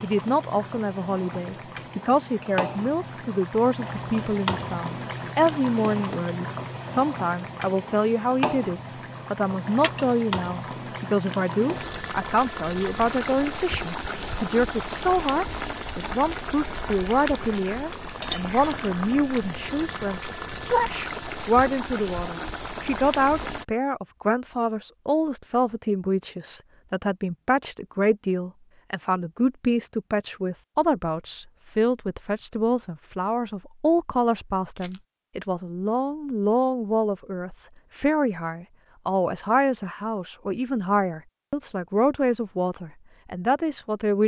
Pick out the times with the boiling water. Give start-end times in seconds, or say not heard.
0.0-23.6.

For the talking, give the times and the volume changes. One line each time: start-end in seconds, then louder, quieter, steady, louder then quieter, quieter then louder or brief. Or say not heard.
0.0-44.2 steady.